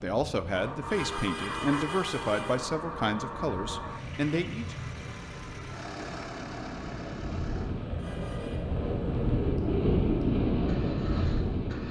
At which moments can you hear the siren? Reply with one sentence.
You can't hear the siren here.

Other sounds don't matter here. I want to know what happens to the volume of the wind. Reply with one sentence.
The loudness of the wind goes up.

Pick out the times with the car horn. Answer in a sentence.
The car horn can be heard from 0.9 to 2.6 s and from 8.0 to 8.7 s.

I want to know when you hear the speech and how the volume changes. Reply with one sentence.
The speech can be heard from 0.0 to 4.8 s, at a steady volume.